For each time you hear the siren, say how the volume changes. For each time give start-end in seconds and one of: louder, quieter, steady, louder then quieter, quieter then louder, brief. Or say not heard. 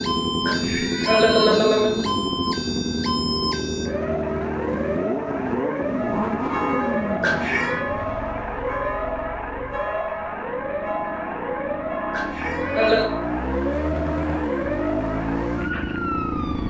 0.0-16.6 steady.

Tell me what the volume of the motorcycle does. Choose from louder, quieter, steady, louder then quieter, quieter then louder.
quieter then louder.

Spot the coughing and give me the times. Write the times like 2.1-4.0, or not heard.
0.5-2.0, 7.2-7.8, 12.1-13.1.